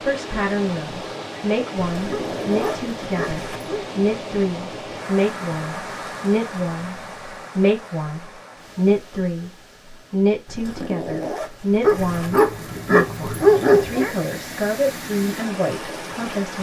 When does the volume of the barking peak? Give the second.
14 s.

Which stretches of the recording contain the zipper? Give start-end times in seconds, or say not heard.
1.9-3.6, 10.4-12.3.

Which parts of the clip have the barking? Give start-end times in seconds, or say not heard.
2.1-3.9, 11.8-14.2.